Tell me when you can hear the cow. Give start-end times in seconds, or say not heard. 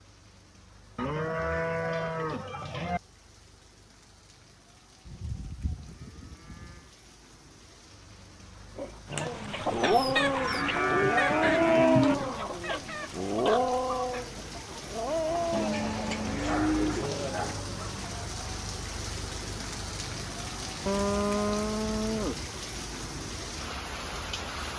0.9-3.0, 5.0-6.8, 10.2-12.2, 15.5-17.6, 20.9-22.4.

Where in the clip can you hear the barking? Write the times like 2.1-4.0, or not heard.
8.8-17.7.